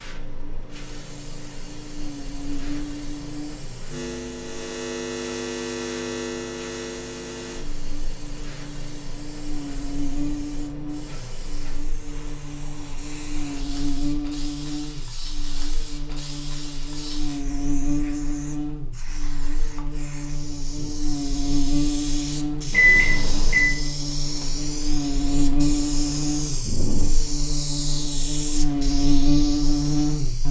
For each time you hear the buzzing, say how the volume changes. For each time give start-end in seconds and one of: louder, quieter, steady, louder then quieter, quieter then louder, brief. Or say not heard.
0.1-30.4 louder.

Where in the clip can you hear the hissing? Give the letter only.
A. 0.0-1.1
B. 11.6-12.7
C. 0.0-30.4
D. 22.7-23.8
C.